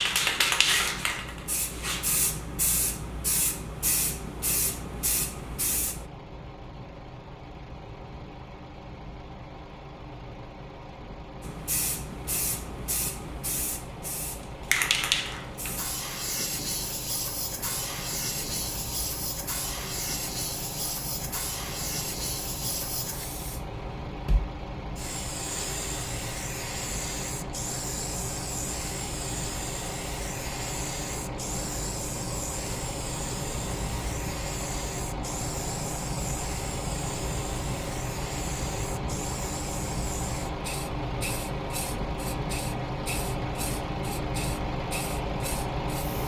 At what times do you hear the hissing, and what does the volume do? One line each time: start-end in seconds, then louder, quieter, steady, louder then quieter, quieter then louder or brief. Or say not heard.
0.0-6.0 quieter
11.4-46.2 quieter.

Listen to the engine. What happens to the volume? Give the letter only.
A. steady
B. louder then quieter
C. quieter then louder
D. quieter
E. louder
E.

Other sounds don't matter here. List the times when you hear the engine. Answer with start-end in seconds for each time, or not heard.
0.0-46.2.